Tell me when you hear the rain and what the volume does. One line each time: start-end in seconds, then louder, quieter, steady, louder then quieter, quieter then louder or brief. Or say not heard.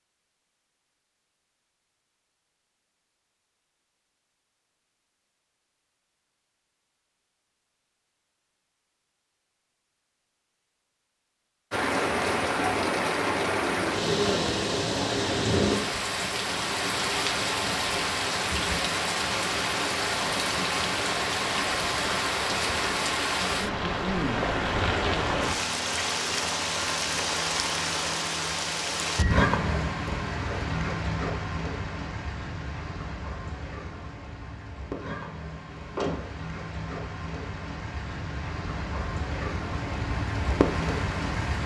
11.7-41.6 quieter.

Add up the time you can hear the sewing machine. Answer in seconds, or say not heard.
not heard.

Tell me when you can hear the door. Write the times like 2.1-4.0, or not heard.
35.8-36.5.